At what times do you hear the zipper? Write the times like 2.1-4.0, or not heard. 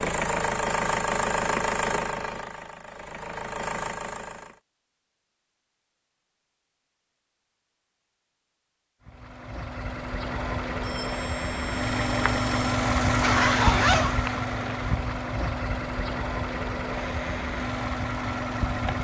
13.2-14.2.